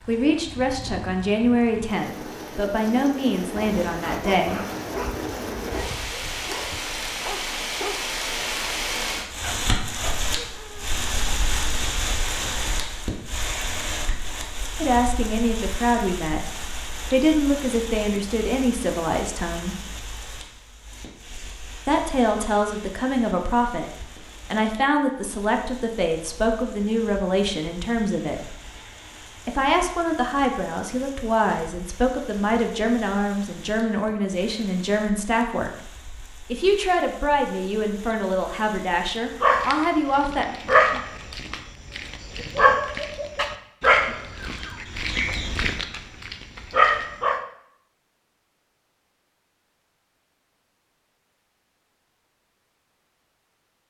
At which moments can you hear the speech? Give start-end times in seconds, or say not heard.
0.1-4.6, 14.8-19.8, 21.9-28.5, 29.4-35.8, 36.5-40.5.